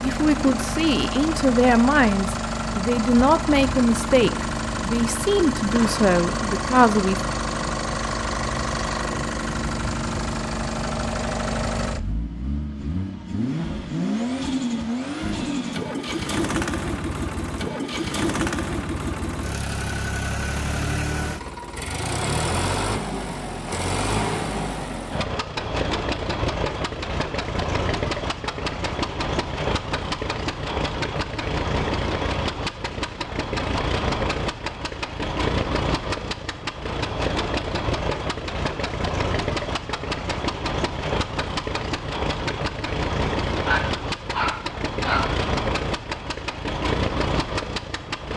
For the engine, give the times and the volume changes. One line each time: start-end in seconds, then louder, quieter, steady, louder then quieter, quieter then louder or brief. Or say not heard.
0.0-48.3 steady.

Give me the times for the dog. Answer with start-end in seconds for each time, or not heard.
43.6-45.4.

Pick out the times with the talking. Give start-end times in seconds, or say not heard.
0.0-7.2.